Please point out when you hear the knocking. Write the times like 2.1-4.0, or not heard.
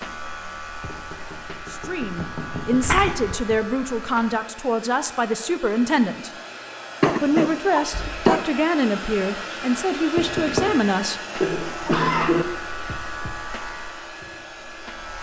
0.8-3.3, 7.9-8.3, 10.2-10.8.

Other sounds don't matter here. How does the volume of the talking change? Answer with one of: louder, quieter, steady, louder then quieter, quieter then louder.
steady.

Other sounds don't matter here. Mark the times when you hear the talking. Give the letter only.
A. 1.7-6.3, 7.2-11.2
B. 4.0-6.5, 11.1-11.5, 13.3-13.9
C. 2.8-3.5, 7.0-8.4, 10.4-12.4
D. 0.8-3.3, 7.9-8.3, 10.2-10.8
A.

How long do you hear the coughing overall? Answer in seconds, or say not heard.
4 s.